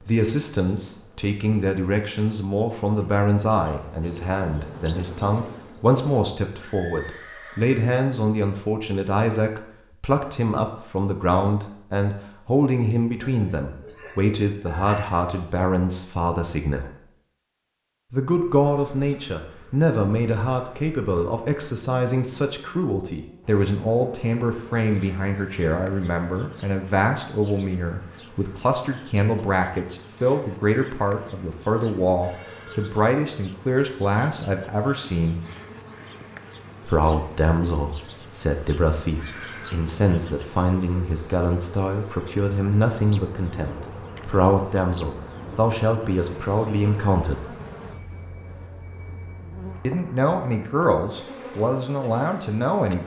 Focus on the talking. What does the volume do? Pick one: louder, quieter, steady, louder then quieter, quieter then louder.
steady.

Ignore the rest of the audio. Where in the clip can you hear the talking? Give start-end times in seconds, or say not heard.
0.0-16.9, 18.1-35.4, 36.9-47.5, 49.9-53.0.